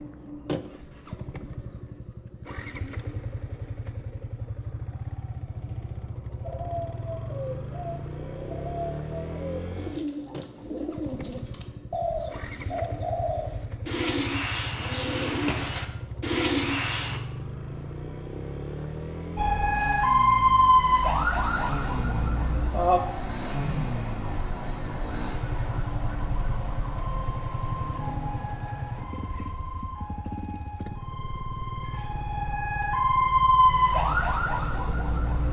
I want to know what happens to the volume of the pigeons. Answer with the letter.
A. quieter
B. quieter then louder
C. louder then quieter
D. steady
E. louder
E.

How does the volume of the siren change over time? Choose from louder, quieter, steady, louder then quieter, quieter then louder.
quieter then louder.